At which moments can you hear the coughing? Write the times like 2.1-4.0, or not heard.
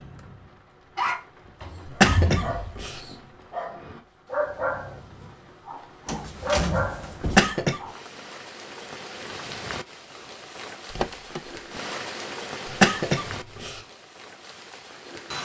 1.9-3.0, 7.2-7.8, 12.7-13.8.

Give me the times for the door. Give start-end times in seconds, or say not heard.
1.6-2.9, 6.0-7.5, 10.9-11.8.